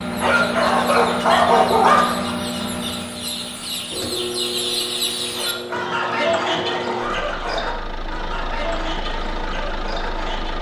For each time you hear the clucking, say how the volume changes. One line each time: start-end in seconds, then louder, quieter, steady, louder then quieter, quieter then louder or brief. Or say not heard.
0.0-10.5 louder then quieter.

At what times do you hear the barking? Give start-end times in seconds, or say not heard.
0.2-2.4, 5.3-7.7.